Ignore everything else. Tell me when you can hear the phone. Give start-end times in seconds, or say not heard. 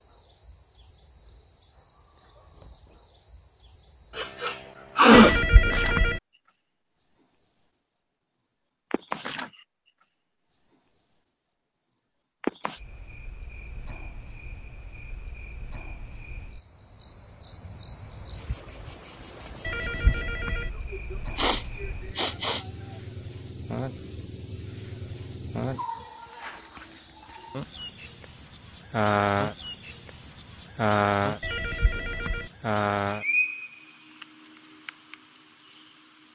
5.1-6.2, 19.6-20.7, 31.4-32.5.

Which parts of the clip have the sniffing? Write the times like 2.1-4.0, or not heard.
4.2-5.4, 20.9-22.6.